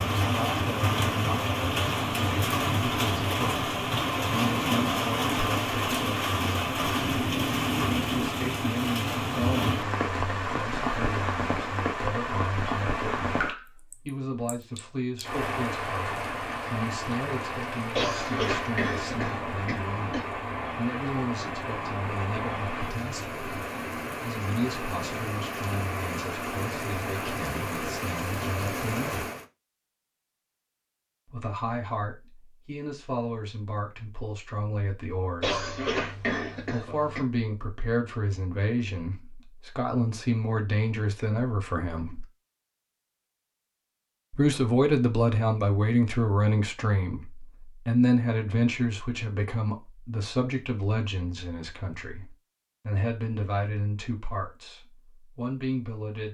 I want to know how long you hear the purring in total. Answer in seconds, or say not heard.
not heard.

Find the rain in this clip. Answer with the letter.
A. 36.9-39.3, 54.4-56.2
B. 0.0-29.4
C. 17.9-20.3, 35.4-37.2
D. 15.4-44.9
B.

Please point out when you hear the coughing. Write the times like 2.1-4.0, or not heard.
17.9-20.3, 35.4-37.2.